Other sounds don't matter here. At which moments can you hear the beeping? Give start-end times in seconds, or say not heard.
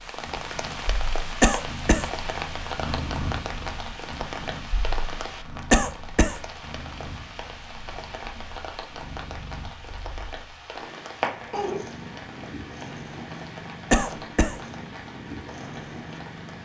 not heard.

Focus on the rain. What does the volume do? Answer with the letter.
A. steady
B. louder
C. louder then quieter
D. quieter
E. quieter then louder
D.